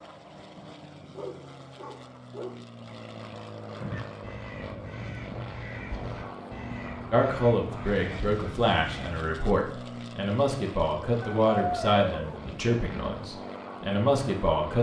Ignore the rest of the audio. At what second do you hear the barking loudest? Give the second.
12 s.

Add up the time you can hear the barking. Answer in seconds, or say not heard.
3 s.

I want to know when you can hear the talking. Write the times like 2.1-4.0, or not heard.
7.1-14.7.